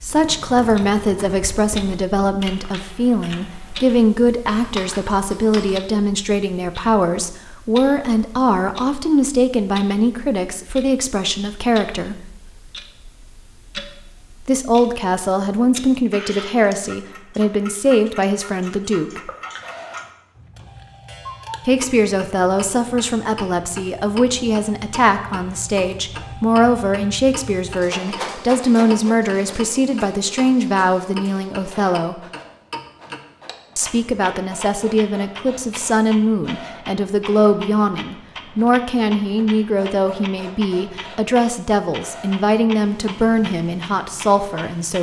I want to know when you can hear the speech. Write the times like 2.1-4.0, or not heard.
0.0-12.2, 14.4-19.3, 21.6-32.1, 33.8-44.9.